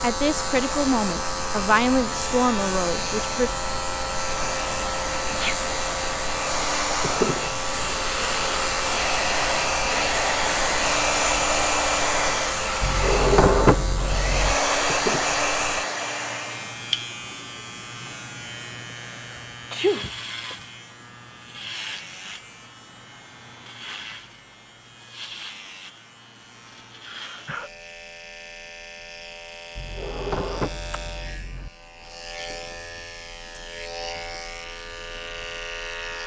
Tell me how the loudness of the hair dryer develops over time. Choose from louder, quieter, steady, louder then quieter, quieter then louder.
louder.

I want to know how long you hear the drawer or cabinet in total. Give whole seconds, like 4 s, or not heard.
4 s.